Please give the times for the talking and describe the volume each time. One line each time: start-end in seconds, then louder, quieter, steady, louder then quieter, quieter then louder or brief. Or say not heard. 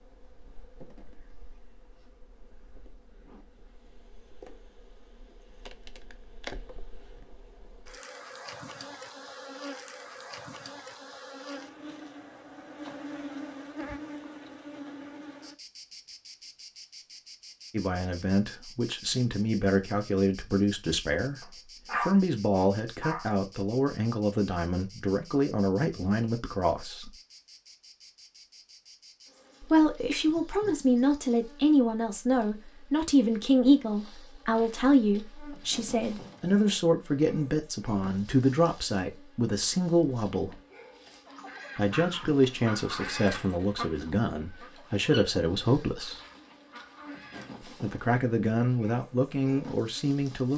17.7-27.1 steady
29.6-40.5 steady
41.8-46.2 quieter then louder
47.6-50.5 brief.